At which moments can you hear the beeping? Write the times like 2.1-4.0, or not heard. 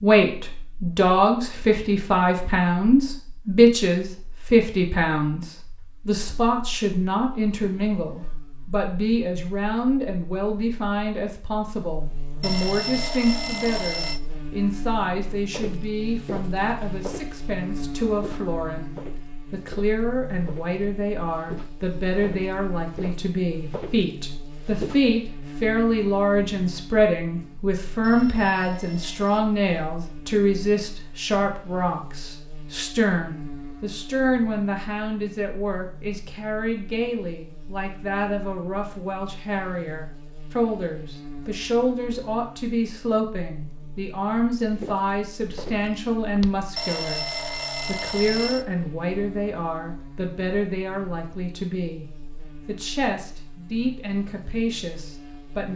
12.4-14.2, 28.0-29.4, 46.8-48.6.